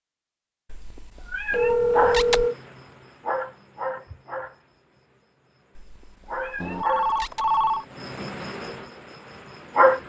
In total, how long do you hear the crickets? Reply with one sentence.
You can hear the crickets for 8 seconds altogether.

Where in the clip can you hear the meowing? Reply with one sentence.
You can hear the meowing from 0.7 to 2.5 s and from 5.8 to 7.5 s.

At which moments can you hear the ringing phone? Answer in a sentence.
The ringing phone can be heard from 1.5 to 2.5 s and from 6.6 to 7.8 s.